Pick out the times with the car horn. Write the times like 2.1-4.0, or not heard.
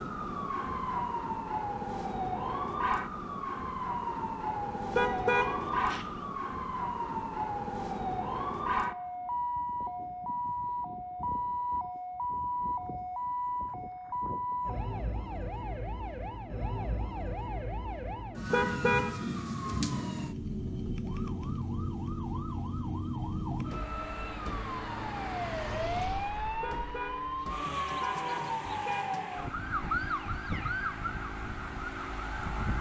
4.9-6.2, 18.5-19.1, 26.6-29.1.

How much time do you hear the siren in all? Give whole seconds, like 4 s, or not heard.
33 s.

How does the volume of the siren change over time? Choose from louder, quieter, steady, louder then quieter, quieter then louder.
steady.